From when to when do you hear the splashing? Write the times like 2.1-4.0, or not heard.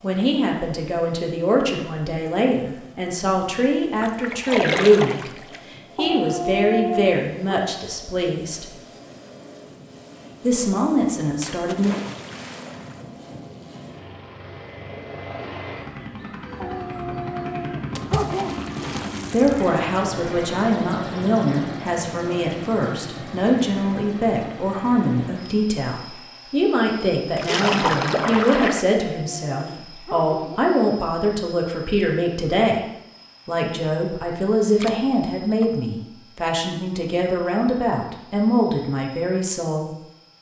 4.0-5.6, 11.4-12.9, 17.9-19.7, 27.4-28.9, 34.8-35.9.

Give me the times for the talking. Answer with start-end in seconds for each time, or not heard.
0.0-8.7, 10.4-11.9, 19.3-32.8, 33.5-39.9.